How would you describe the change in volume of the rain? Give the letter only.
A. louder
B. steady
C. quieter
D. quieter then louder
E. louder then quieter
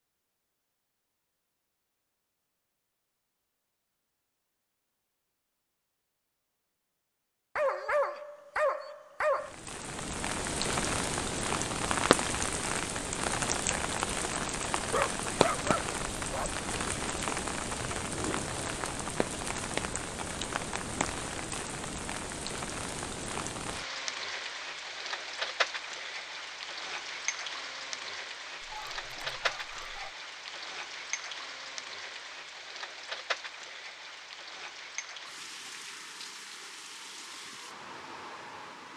C.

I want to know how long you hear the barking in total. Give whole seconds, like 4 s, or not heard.
5 s.